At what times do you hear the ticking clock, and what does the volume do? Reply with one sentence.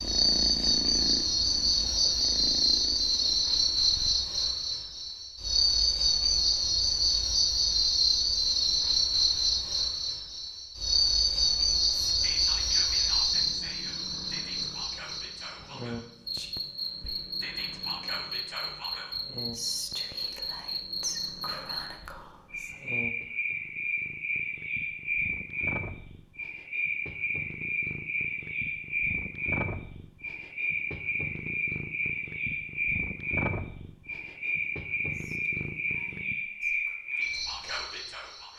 You can't hear the ticking clock here.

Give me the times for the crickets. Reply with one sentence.
You can hear the crickets from 0.0 to 38.5 s.